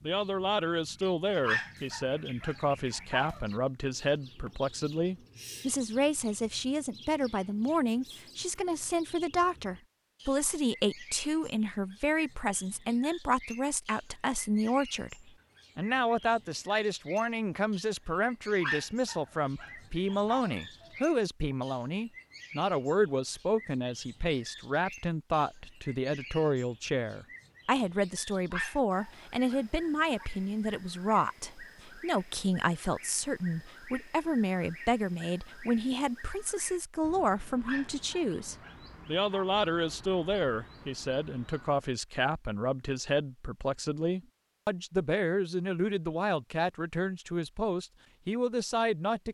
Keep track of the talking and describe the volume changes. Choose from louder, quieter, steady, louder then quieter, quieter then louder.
steady.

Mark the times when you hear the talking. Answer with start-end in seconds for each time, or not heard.
0.0-49.2.